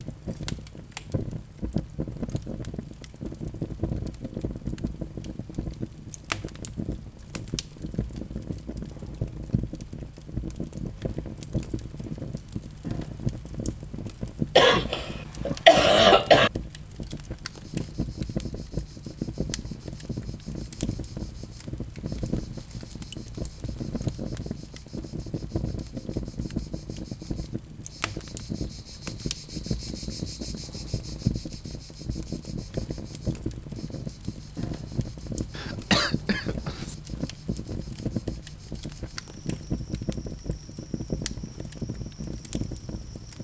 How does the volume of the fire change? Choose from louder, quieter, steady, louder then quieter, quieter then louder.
steady.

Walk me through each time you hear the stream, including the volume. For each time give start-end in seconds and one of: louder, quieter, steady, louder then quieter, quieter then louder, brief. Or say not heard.
not heard.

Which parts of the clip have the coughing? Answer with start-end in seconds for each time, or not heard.
14.6-16.5, 35.5-37.0.